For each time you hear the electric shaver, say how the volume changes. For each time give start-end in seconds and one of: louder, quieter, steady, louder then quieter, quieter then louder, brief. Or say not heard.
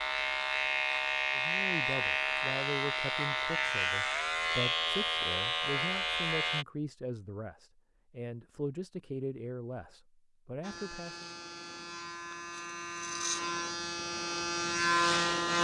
0.0-6.7 steady
10.6-15.5 louder.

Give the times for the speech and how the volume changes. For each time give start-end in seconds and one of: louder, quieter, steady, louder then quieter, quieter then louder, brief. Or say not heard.
1.4-11.2 steady.